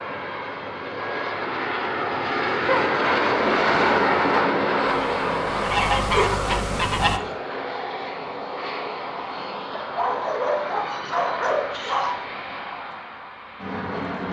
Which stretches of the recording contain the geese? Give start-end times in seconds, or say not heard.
4.8-7.2.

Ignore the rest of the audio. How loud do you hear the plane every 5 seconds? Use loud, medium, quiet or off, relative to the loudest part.
loud, medium, medium.